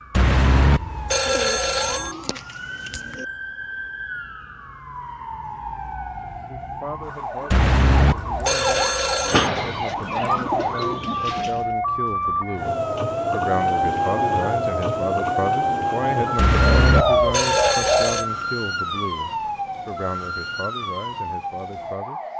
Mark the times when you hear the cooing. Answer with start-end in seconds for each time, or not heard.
1.3-3.2, 9.2-11.6, 16.8-18.1.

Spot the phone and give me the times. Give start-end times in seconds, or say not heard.
0.1-2.1, 7.5-9.5, 16.4-18.2.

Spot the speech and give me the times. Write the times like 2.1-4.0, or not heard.
6.5-22.2.